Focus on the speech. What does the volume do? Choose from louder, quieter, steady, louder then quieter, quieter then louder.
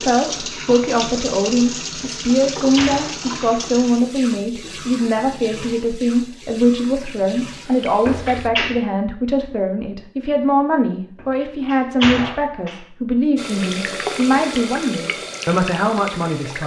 steady.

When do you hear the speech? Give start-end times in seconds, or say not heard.
0.0-16.6.